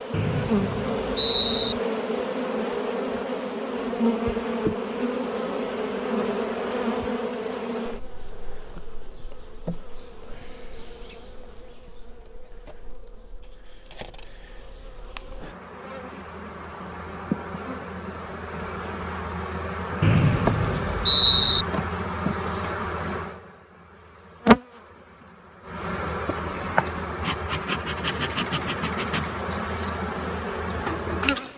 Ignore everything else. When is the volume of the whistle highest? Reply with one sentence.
The volume of the whistle peaks at 21 seconds.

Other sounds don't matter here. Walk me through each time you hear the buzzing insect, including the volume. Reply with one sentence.
The buzzing insect can be heard from 0.0 to 31.5 s, getting quieter then louder.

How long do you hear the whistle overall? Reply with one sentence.
The whistle can be heard for 3 seconds in total.